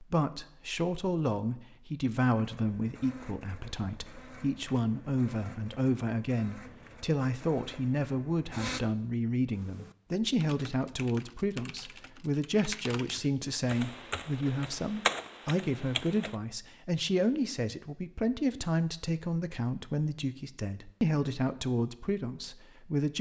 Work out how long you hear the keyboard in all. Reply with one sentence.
The keyboard can be heard for 7 seconds in total.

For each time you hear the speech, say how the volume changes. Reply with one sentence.
You can hear the speech from 0.0 to 23.1 s, at a steady volume.